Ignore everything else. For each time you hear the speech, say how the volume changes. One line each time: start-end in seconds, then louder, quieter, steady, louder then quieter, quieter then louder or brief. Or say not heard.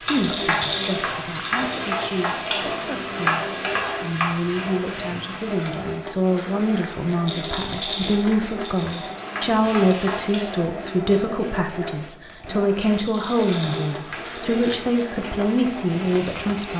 0.1-16.7 louder.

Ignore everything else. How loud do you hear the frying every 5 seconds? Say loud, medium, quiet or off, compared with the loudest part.
loud, medium, medium, medium.